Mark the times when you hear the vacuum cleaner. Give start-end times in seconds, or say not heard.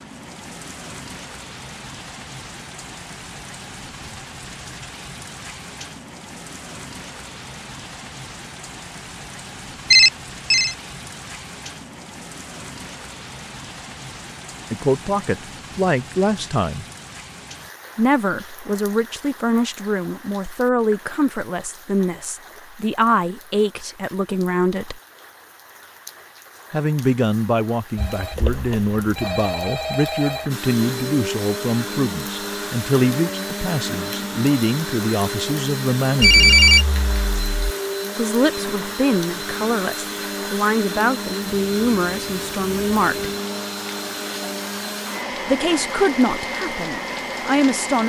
30.5-48.0.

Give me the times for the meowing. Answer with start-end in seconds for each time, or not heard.
not heard.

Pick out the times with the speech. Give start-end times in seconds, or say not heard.
14.7-16.9, 17.9-25.0, 26.7-36.6, 38.1-43.3, 45.5-48.0.